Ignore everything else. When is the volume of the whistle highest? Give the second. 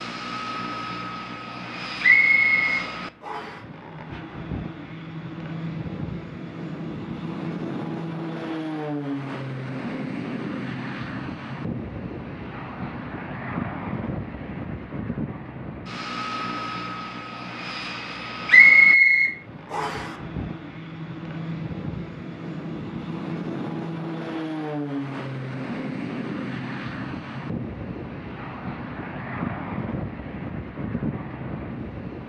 19 s.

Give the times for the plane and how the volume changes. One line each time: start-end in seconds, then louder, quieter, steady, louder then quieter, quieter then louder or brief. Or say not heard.
0.0-32.2 steady.